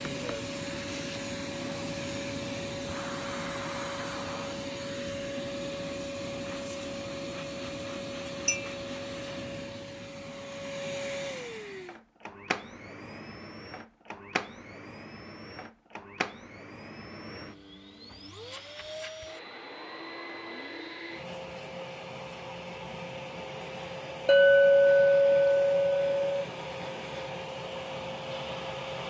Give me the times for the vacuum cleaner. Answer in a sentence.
You can hear the vacuum cleaner from 0.0 to 29.0 s.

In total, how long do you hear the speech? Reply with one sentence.
You can't hear the speech here.